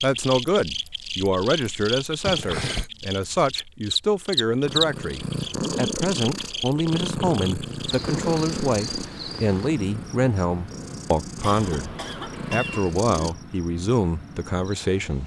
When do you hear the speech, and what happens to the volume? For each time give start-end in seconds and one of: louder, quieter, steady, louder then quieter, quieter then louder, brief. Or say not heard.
0.0-11.9 steady
12.5-15.2 brief.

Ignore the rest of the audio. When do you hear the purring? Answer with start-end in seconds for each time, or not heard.
4.6-13.3.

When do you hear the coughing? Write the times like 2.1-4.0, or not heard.
2.2-2.9, 11.4-13.3.